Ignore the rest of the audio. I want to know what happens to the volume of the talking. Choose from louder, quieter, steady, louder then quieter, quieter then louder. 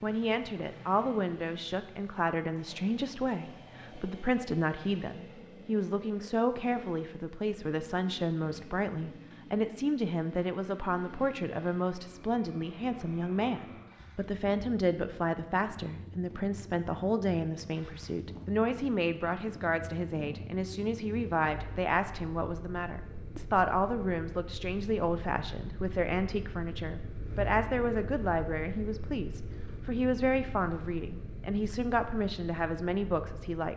steady.